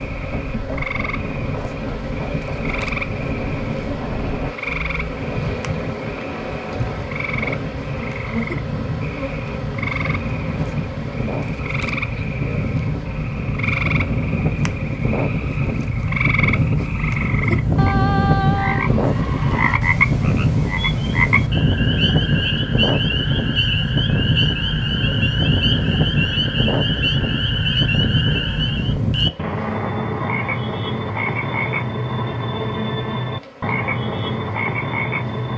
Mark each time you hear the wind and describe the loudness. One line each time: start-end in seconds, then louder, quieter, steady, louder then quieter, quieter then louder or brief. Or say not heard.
0.0-29.3 louder.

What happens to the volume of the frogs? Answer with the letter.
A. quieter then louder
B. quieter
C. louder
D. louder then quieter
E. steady
C.